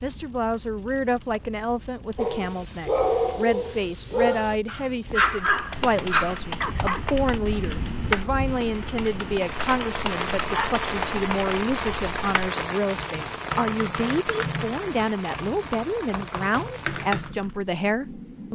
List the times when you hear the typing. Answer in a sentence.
The typing can be heard from 5.3 to 17.6 s.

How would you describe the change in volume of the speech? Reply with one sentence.
The loudness of the speech stays about the same.